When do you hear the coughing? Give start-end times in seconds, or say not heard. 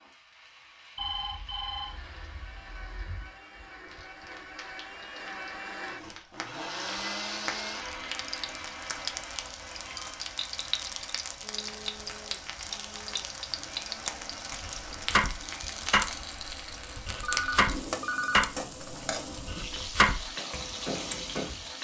not heard.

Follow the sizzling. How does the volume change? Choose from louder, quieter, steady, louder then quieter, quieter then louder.
louder.